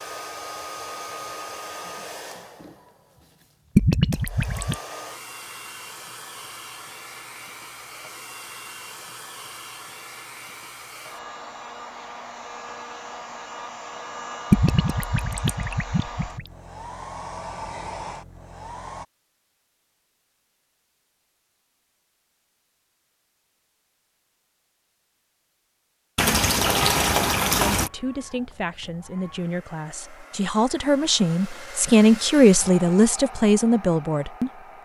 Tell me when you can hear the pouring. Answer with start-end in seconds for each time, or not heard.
3.8-4.8, 14.5-16.4, 26.1-27.9.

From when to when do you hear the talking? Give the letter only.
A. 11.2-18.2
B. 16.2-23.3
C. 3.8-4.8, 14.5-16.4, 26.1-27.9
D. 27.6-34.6
D.